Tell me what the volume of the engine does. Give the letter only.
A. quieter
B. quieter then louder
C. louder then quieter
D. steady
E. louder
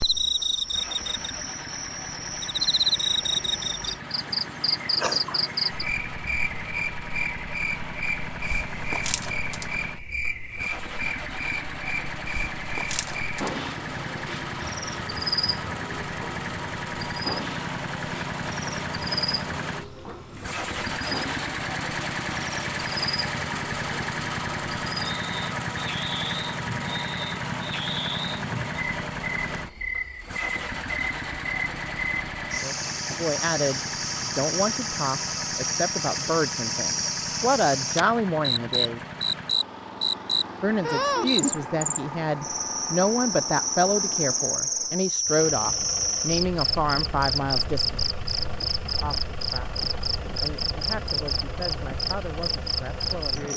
C.